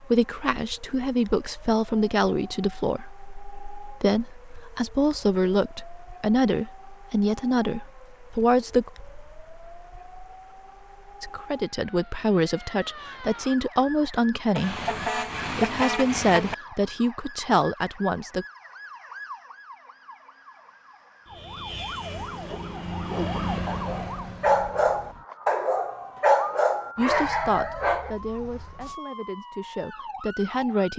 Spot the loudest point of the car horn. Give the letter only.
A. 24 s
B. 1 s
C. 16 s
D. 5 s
C.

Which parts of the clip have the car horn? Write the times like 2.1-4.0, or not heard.
14.6-16.6.